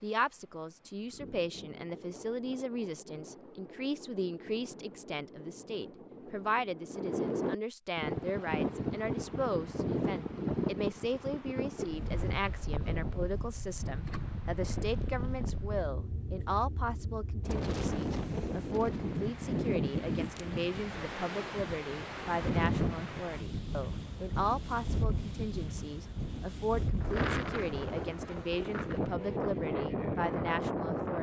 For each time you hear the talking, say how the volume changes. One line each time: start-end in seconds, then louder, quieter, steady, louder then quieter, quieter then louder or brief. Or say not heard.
0.0-31.1 steady.